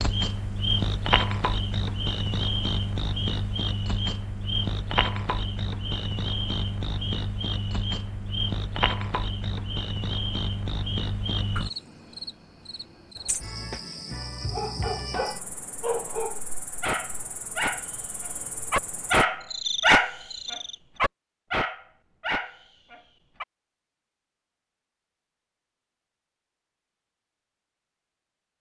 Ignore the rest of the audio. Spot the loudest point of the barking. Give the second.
20 s.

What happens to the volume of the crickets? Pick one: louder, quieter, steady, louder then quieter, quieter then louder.
quieter.